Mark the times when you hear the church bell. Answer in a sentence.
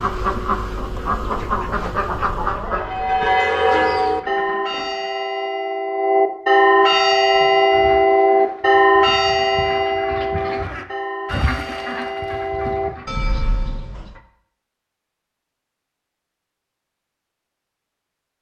The church bell can be heard from 2.7 to 14.2 s.